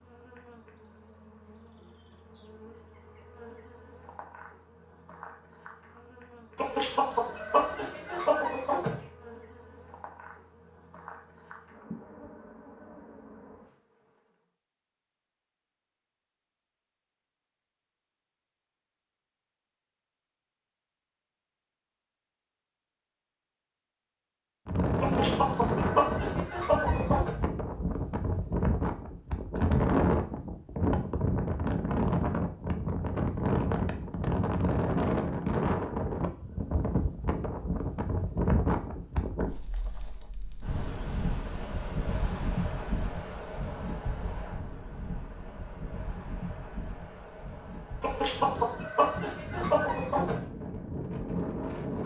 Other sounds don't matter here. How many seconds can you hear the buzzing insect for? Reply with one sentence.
You can hear the buzzing insect for 14 seconds altogether.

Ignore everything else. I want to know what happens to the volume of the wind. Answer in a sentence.
The volume of the wind goes down.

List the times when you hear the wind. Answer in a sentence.
The wind can be heard from 24.6 to 52.0 s.